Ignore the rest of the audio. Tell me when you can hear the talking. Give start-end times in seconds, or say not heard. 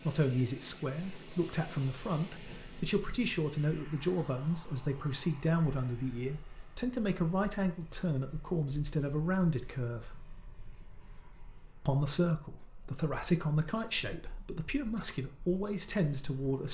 0.0-10.2, 11.8-16.6.